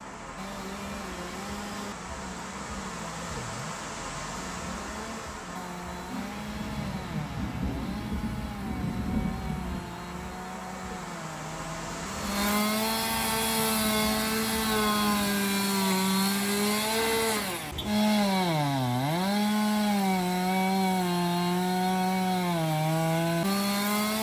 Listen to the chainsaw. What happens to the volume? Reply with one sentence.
The loudness of the chainsaw goes up.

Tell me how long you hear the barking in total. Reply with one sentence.
You can't hear the barking here.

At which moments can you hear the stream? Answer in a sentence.
The stream can be heard from 0.0 to 12.6 s.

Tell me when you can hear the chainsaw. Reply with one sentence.
The chainsaw can be heard from 0.2 to 24.1 s.